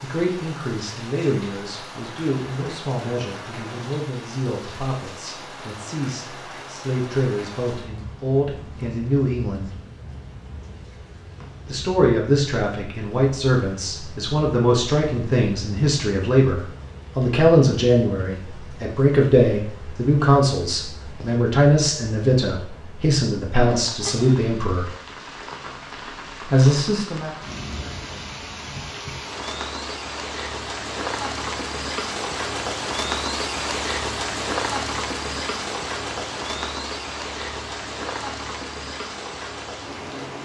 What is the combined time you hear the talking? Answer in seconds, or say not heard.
24 s.